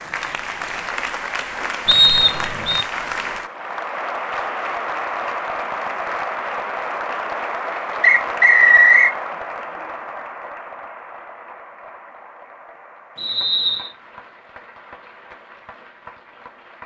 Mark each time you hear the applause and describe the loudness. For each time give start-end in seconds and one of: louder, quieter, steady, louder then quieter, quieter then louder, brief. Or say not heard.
0.0-16.8 quieter.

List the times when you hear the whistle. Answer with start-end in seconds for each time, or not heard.
1.9-2.9, 8.0-9.2, 13.2-13.9.